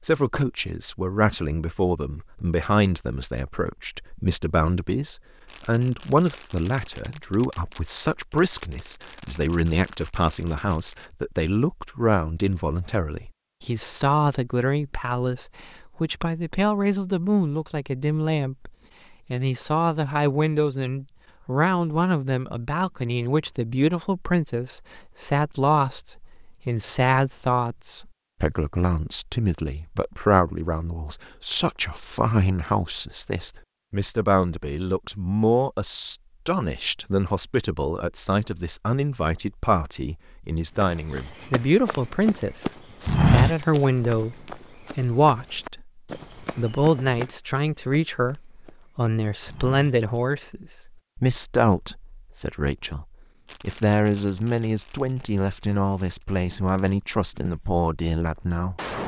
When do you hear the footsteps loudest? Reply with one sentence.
The volume of the footsteps peaks at 43 seconds.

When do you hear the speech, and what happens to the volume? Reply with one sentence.
You can hear the speech from 0.0 to 18.7 s, at a steady volume; and from 19.3 to 58.8 s, at a steady volume.